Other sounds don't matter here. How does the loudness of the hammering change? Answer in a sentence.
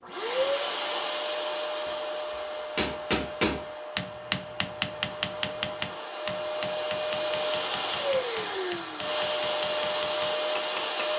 The loudness of the hammering goes down.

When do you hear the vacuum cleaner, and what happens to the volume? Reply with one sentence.
You can hear the vacuum cleaner from 0.0 to 11.1 s, getting quieter then louder.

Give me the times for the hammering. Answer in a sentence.
The hammering can be heard from 1.9 to 11.1 s.